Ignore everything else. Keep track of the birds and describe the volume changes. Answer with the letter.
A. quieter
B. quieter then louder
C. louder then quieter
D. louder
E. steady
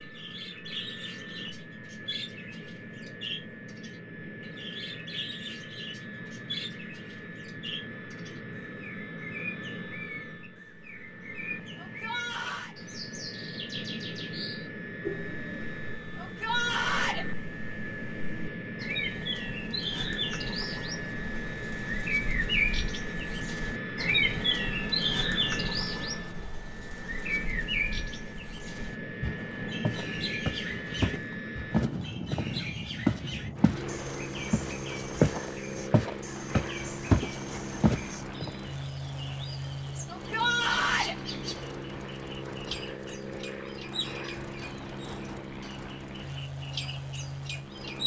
C.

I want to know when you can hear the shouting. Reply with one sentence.
The shouting can be heard from 11.8 to 12.8 s, from 16.1 to 17.2 s and from 40.0 to 41.1 s.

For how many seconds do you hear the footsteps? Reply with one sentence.
The footsteps can be heard for 8 seconds in total.